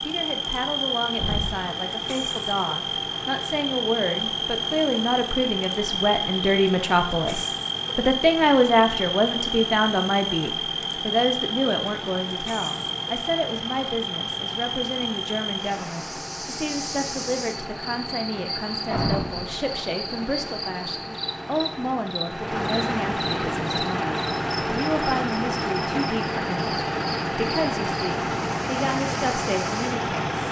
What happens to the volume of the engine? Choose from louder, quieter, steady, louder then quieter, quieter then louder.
louder.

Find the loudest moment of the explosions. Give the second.
19 s.